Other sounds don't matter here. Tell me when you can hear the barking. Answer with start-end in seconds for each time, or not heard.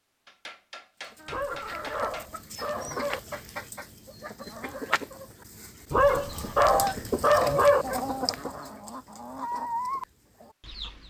1.2-3.2, 5.9-7.8.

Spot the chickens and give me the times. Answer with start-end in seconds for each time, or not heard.
1.1-11.0.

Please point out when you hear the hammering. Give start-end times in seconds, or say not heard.
0.2-2.3, 6.3-7.6.